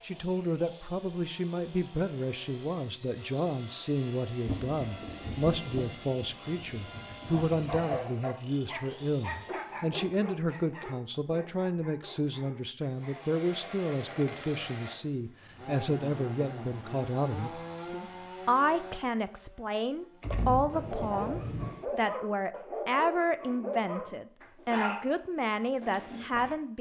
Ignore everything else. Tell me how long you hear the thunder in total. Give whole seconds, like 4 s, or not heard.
5 s.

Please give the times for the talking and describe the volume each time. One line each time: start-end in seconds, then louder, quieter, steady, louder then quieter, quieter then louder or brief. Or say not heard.
0.0-26.7 steady.